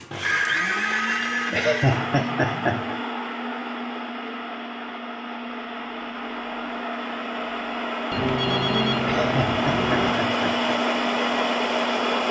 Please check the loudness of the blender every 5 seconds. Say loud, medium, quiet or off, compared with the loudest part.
medium, medium, loud.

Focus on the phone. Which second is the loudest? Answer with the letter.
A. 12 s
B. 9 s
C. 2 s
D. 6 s
B.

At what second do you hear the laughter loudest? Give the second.
2 s.